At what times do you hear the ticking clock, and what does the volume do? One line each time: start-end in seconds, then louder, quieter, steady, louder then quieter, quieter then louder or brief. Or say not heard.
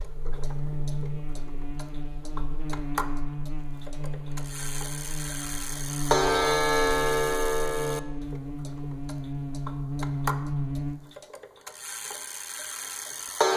0.0-13.5 louder then quieter.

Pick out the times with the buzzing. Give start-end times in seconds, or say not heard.
0.0-11.0.